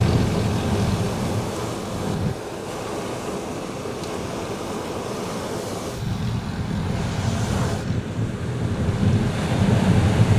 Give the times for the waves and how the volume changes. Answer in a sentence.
You can hear the waves from 0.0 to 10.3 s, at a steady volume.